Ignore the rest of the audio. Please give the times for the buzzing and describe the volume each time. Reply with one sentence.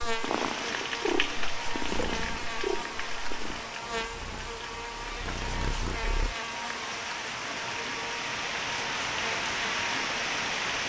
The buzzing can be heard from 0.0 to 10.8 s, at a steady volume.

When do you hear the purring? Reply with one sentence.
The purring can be heard from 0.1 to 6.3 s.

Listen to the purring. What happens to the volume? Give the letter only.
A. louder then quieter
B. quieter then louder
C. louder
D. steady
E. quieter
B.